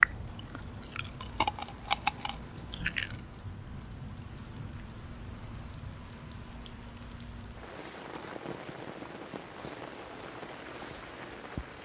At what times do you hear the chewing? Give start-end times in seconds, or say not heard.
0.0-3.2.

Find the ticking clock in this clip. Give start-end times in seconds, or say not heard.
not heard.